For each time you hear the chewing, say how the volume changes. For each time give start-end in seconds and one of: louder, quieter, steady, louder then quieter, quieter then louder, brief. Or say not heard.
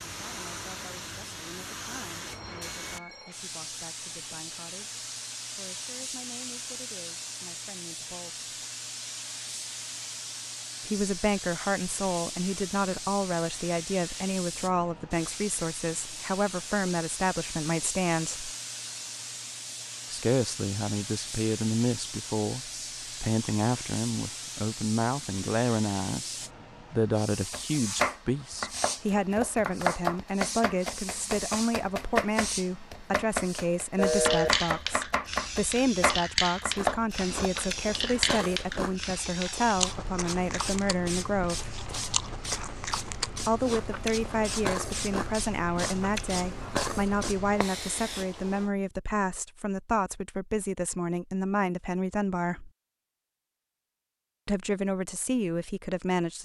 36.8-47.4 steady.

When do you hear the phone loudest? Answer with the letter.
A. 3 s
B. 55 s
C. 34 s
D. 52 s
C.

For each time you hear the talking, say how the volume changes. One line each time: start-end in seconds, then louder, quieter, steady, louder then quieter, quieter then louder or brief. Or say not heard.
0.1-8.4 steady
10.8-18.5 steady
20.1-41.8 steady
43.5-52.7 steady
54.5-56.4 brief.